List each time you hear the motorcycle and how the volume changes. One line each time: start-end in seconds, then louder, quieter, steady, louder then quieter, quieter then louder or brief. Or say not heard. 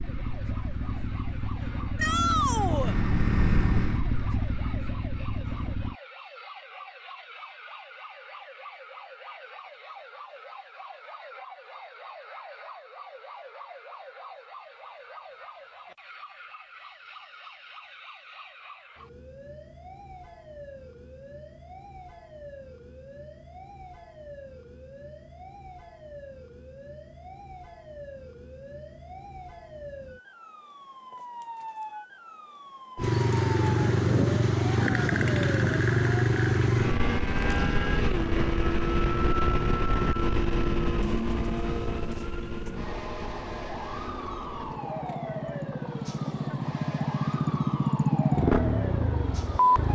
0.0-6.0 louder then quieter
33.0-49.9 quieter then louder.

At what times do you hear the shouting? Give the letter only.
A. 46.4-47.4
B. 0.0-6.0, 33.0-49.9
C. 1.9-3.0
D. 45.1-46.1
C.